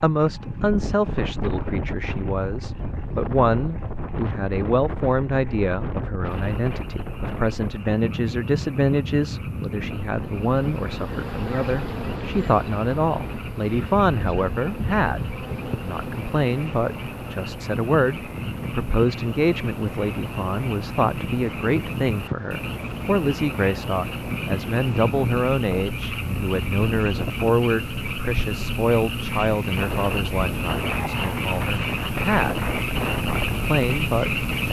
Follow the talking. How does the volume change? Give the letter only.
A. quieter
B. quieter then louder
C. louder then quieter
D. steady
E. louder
D.